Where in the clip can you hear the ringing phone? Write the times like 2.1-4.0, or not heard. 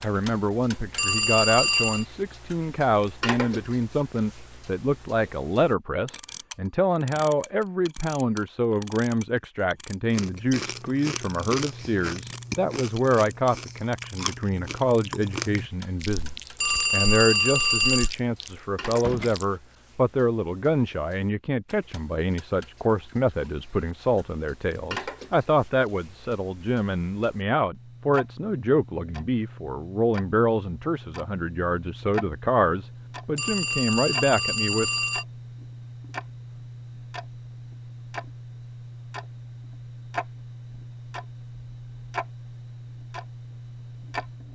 0.9-2.0, 16.6-18.1, 33.4-35.2.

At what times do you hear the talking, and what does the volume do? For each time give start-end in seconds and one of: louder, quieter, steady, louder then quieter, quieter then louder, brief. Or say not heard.
0.0-34.9 steady.